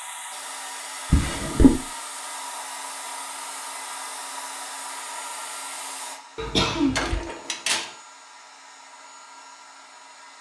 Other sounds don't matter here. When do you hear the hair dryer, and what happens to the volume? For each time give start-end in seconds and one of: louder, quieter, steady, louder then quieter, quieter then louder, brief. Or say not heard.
0.0-10.3 quieter.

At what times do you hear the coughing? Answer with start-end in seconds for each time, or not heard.
6.3-7.2.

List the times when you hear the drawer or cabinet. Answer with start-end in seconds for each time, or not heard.
1.1-1.8, 7.0-8.0.